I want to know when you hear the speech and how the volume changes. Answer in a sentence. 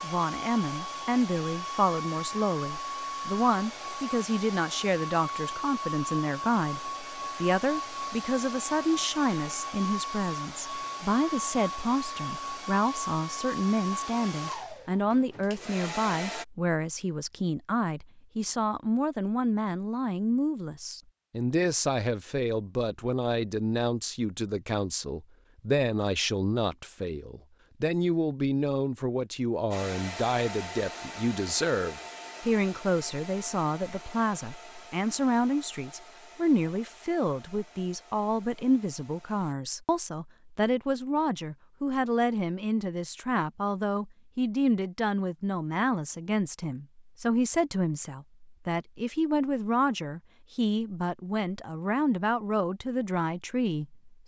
The speech can be heard from 0.0 to 54.2 s, at a steady volume.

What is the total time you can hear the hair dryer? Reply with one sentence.
The hair dryer can be heard for 26 seconds in total.